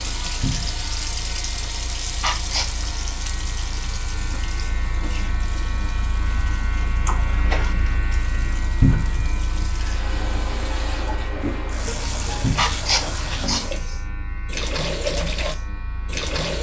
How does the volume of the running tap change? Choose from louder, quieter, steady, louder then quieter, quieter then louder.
quieter then louder.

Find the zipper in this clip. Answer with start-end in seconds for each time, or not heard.
not heard.